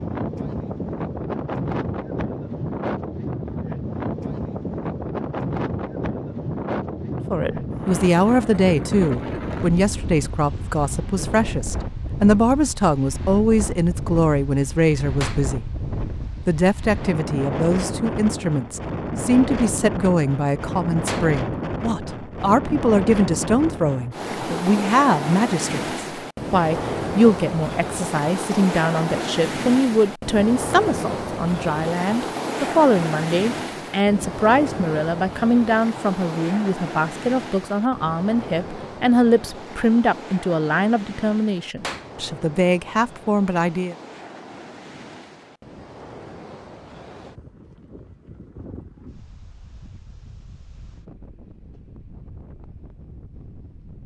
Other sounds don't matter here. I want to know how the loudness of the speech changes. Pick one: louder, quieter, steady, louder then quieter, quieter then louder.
steady.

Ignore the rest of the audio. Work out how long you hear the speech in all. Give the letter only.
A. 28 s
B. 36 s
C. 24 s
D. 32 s
B.